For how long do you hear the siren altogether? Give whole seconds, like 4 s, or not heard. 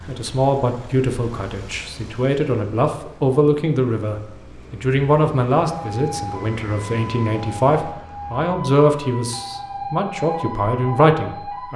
6 s.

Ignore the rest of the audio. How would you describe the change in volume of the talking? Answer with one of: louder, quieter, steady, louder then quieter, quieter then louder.
steady.